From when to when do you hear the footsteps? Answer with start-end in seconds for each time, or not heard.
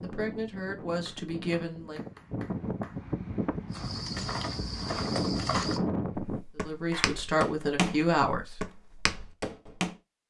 3.7-9.9.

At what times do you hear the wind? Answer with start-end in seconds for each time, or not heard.
0.0-6.5.